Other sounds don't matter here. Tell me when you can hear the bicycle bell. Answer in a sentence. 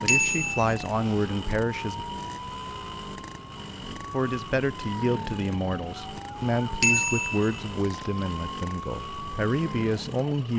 You can hear the bicycle bell from 0.1 to 0.7 s and from 6.8 to 8.0 s.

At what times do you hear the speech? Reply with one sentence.
You can hear the speech from 0.0 to 2.0 s and from 4.1 to 10.5 s.